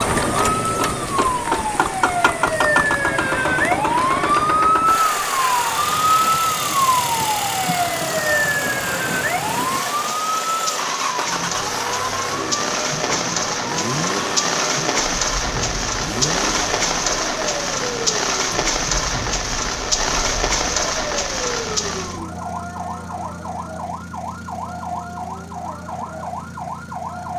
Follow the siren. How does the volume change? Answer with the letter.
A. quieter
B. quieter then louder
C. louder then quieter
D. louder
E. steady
A.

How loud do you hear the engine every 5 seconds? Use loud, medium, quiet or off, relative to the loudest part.
loud, loud, medium, medium, quiet, quiet.